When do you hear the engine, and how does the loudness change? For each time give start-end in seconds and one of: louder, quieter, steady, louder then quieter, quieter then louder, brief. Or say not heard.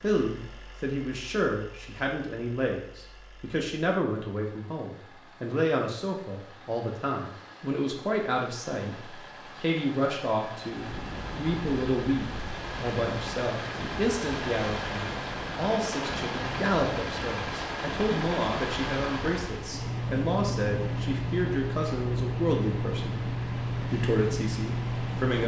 0.0-25.4 louder.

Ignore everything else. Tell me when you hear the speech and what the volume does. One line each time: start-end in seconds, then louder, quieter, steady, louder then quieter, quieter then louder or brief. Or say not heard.
0.0-25.4 steady.